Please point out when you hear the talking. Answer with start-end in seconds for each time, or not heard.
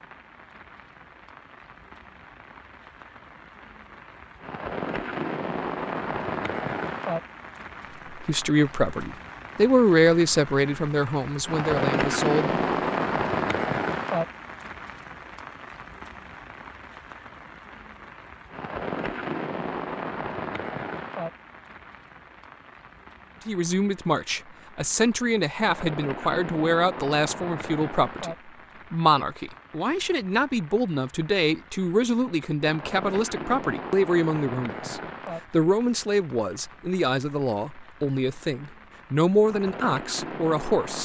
8.2-12.6, 23.4-41.0.